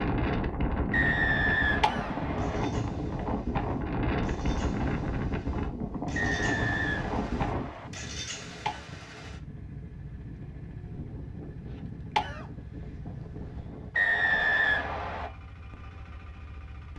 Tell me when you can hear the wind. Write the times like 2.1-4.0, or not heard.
0.0-13.9.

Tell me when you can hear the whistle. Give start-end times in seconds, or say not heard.
0.9-2.6, 6.2-7.9, 13.9-15.3.